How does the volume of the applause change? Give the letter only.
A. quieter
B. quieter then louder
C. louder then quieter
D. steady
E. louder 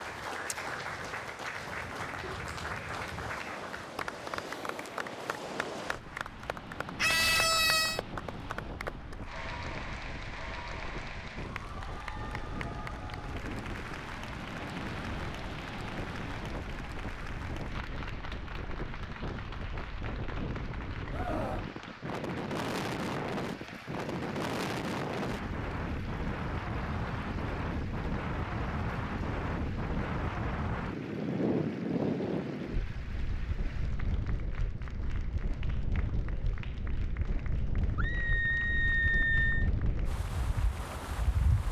A.